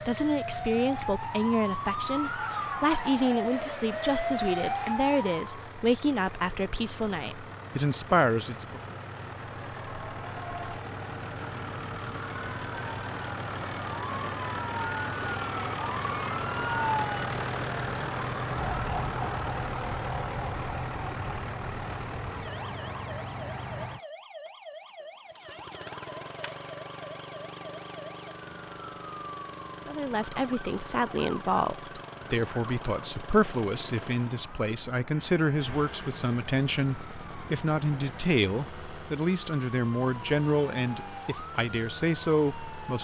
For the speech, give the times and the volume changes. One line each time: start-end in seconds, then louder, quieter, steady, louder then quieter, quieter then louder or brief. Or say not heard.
0.1-8.9 steady
29.9-43.0 steady.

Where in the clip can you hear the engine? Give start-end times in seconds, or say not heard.
0.0-43.0.